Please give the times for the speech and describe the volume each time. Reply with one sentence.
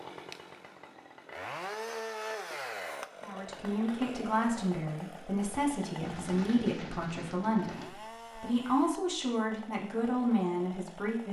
The speech can be heard from 3.2 to 11.2 s, at a steady volume.